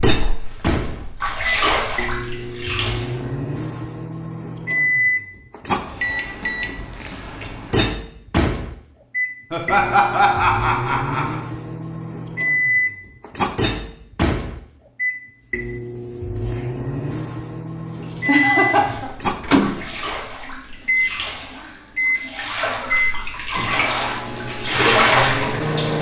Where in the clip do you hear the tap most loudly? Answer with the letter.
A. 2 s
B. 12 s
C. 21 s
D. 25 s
D.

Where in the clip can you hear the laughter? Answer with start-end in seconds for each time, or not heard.
9.5-11.4, 18.2-19.1.